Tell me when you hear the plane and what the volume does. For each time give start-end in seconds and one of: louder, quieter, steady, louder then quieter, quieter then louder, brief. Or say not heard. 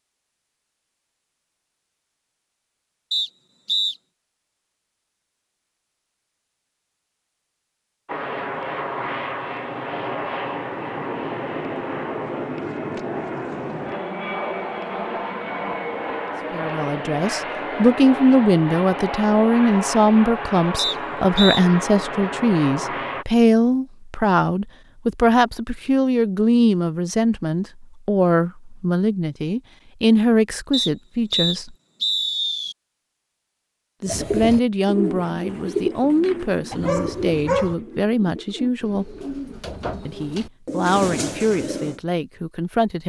8.1-23.2 steady.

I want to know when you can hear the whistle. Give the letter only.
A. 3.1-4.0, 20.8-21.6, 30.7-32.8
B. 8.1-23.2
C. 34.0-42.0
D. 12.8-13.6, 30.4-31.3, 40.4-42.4
A.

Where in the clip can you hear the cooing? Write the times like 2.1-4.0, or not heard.
34.0-42.0.